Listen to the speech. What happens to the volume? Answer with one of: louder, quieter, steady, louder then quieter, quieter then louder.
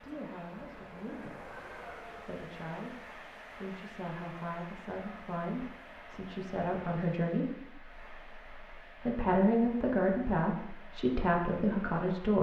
louder.